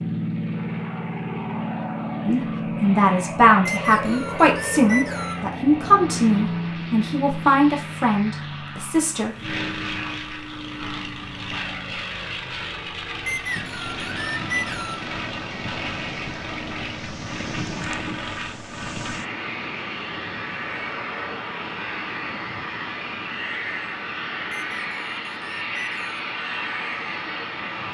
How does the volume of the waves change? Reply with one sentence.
The loudness of the waves goes down.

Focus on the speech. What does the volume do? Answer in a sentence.
The volume of the speech goes down.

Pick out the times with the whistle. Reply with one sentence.
The whistle can be heard from 3.6 to 5.5 s, from 13.2 to 15.1 s and from 24.5 to 26.1 s.